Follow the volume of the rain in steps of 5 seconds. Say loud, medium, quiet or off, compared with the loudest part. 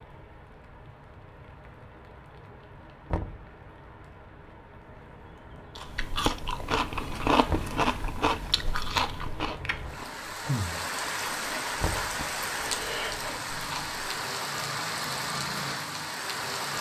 quiet, quiet, loud, loud.